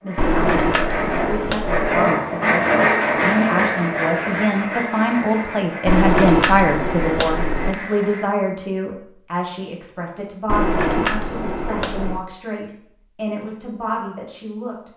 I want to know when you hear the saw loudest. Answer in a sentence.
The volume of the saw peaks at 3 seconds.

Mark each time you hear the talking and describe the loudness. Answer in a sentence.
You can hear the talking from 0.0 to 14.9 s, getting louder then quieter.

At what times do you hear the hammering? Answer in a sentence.
You can hear the hammering from 0.1 to 2.0 s, from 5.8 to 7.8 s and from 10.4 to 12.2 s.